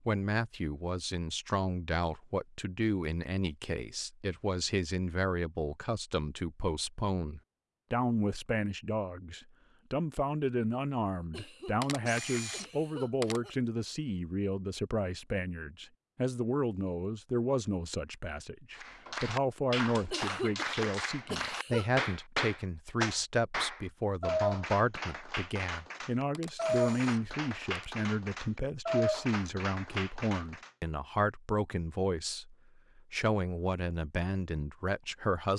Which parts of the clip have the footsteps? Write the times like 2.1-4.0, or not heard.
not heard.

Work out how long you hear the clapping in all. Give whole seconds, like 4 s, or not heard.
12 s.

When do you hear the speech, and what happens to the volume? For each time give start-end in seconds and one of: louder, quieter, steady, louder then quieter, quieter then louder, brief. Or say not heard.
0.1-35.5 steady.